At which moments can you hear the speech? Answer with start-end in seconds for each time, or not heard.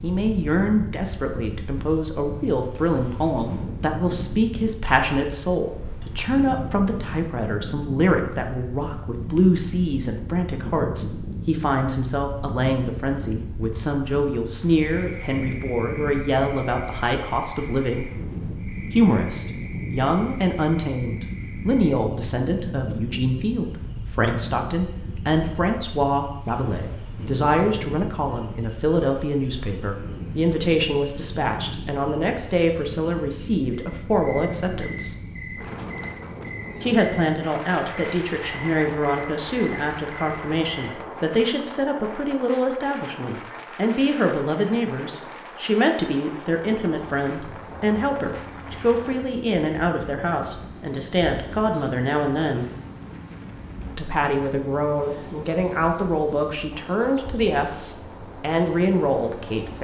0.0-18.1, 18.9-35.1, 36.8-52.6, 54.0-59.8.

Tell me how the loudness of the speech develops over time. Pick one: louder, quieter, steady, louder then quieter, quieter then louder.
steady.